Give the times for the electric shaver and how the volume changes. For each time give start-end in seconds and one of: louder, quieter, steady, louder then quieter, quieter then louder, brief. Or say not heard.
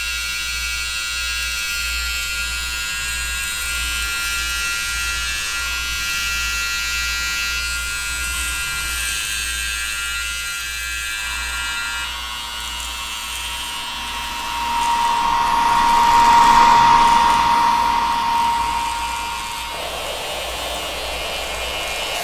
0.0-22.1 quieter.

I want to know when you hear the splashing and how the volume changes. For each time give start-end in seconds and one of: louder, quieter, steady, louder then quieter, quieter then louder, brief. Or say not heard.
not heard.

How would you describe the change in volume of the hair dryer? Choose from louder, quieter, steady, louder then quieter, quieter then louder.
louder then quieter.